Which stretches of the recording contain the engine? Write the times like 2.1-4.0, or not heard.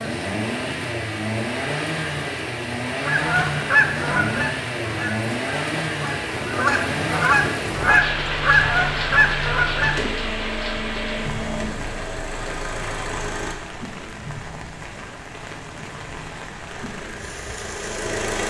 0.0-13.6, 16.6-18.4.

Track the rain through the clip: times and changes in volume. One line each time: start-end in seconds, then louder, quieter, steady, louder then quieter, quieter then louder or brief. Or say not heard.
0.0-18.2 louder then quieter.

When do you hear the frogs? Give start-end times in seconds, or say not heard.
not heard.